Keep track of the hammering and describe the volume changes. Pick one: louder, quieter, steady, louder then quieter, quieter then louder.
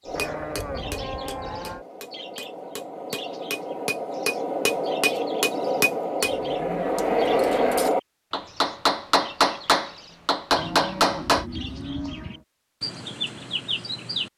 louder.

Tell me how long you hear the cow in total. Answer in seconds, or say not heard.
5 s.